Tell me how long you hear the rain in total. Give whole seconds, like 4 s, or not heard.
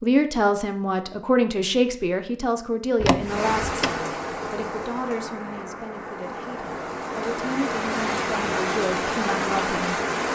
7 s.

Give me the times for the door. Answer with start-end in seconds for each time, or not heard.
3.0-4.0.